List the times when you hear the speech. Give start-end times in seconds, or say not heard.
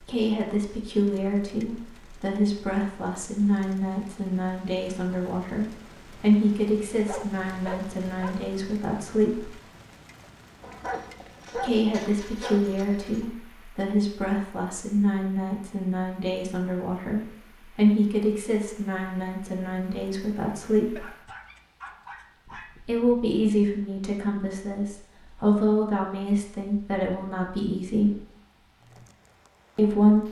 0.0-9.6, 11.6-21.1, 22.9-28.2, 29.8-30.2.